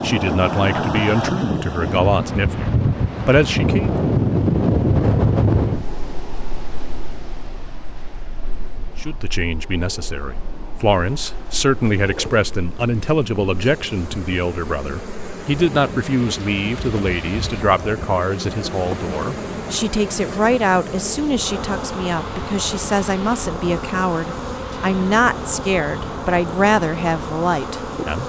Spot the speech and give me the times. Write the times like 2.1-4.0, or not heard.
0.0-4.0, 9.0-28.2.